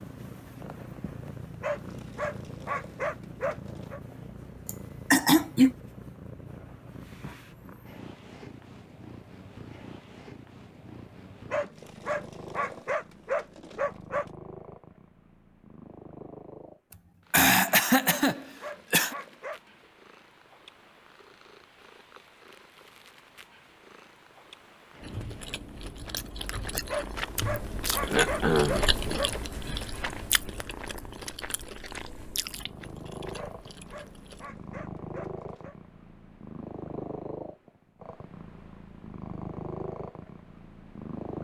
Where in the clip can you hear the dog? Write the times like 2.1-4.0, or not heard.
1.6-4.0, 11.5-14.2, 18.3-19.9, 26.9-29.3, 33.4-35.8.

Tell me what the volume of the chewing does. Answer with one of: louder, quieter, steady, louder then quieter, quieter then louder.
louder then quieter.